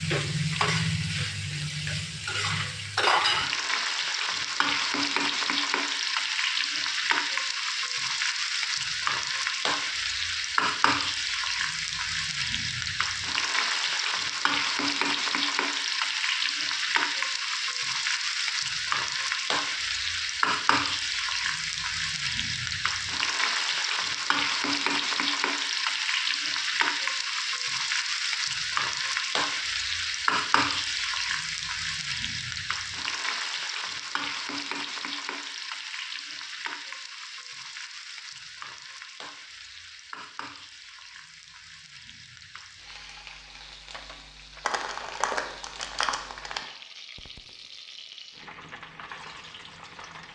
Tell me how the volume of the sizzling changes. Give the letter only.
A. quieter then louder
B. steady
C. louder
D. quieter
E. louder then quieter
D.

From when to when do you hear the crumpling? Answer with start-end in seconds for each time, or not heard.
44.6-46.6.